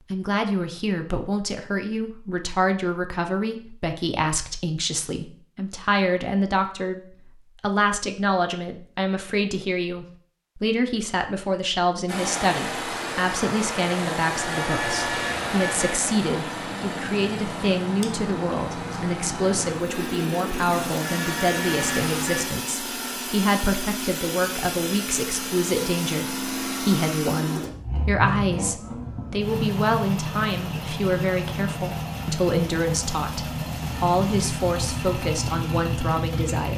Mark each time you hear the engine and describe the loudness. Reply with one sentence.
The engine can be heard from 12.1 to 36.7 s, at a steady volume.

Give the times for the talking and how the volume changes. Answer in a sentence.
The talking can be heard from 0.1 to 36.7 s, at a steady volume.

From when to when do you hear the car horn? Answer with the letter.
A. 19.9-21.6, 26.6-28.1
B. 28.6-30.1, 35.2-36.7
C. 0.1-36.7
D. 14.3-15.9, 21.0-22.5
D.